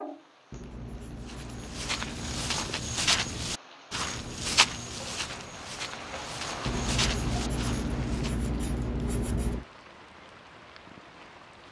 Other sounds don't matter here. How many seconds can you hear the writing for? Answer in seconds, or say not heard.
5 s.